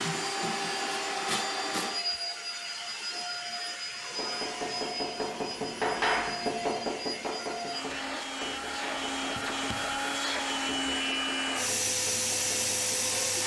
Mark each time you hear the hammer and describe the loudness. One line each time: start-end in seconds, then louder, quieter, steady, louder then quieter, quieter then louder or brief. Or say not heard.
4.2-13.3 quieter.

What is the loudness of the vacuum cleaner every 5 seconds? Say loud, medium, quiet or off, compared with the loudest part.
loud, medium, loud.